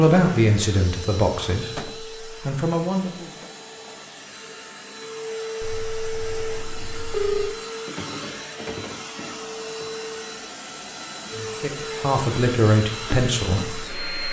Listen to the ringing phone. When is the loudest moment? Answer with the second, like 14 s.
7 s.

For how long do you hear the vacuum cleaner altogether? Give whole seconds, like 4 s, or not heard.
14 s.